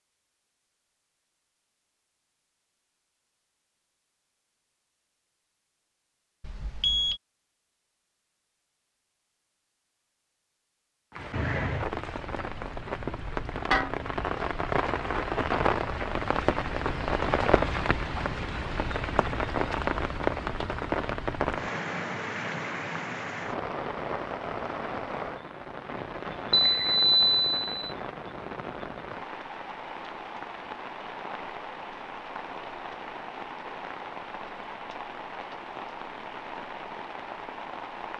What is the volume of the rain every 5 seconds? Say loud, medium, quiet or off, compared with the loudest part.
off, off, loud, loud, loud, medium, medium, medium.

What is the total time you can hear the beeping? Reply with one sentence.
The beeping can be heard for 2 seconds in total.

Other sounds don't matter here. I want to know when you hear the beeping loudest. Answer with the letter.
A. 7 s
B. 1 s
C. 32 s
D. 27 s
D.